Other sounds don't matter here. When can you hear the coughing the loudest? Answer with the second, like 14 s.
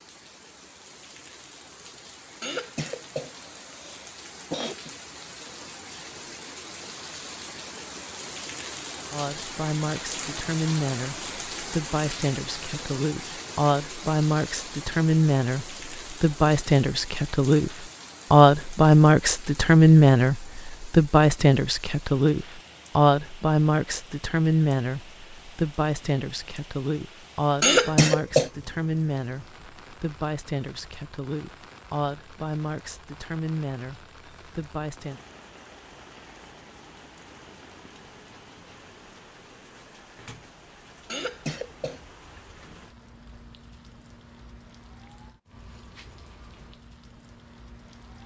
28 s.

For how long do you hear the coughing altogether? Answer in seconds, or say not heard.
4 s.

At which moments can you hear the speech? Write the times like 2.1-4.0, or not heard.
9.1-35.2.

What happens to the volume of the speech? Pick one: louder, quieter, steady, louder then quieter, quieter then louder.
louder then quieter.